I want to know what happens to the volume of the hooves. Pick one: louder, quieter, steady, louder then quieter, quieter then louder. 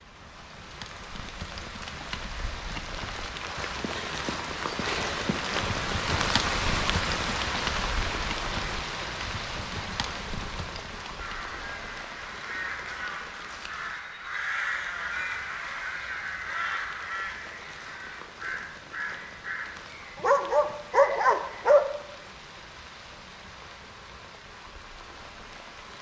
louder then quieter.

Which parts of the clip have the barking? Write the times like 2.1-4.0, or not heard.
20.1-21.9.